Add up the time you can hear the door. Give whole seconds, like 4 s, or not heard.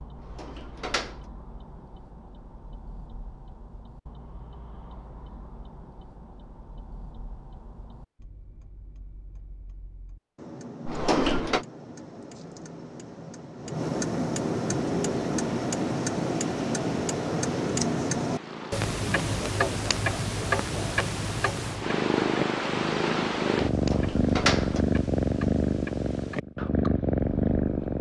3 s.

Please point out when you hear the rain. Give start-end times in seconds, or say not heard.
not heard.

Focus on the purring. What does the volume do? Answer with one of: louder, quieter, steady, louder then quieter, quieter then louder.
louder.